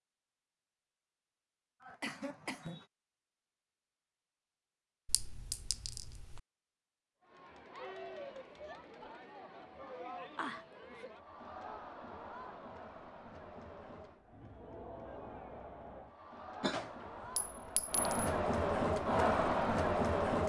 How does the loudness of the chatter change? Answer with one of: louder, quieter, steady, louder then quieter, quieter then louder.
louder.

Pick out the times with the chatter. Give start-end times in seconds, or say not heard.
7.2-20.4.